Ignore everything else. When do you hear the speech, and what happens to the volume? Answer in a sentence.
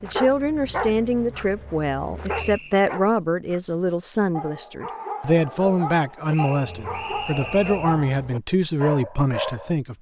The speech can be heard from 0.0 to 9.9 s, at a steady volume.